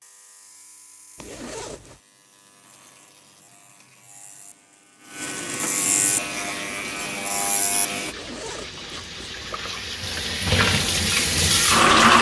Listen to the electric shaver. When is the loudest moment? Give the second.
6 s.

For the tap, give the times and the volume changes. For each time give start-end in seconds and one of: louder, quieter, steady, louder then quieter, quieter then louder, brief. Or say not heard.
6.3-12.1 louder.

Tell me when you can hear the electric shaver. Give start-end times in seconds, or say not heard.
0.0-8.2.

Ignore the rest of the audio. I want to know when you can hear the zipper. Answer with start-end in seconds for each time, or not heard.
1.1-2.0, 8.1-9.5.